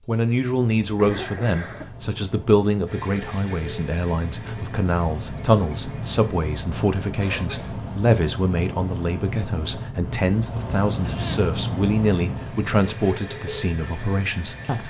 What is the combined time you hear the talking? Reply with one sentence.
The talking can be heard for 15 seconds in total.